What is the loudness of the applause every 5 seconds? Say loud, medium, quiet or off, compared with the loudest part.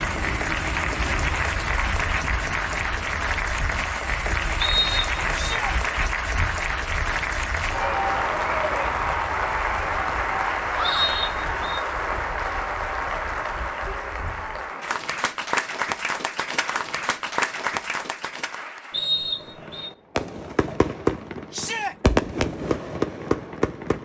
loud, loud, loud, loud, off.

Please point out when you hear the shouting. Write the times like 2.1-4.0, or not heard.
5.3-5.8, 10.7-11.2, 21.5-21.9.